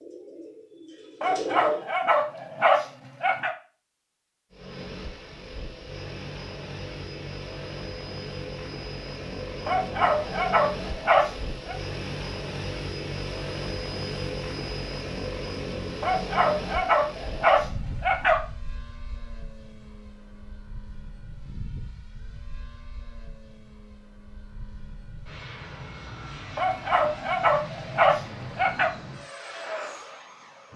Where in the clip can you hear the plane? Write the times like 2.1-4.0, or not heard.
4.5-30.7.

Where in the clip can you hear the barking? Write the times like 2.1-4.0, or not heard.
1.2-3.5, 9.7-11.8, 16.0-18.4, 26.6-28.9.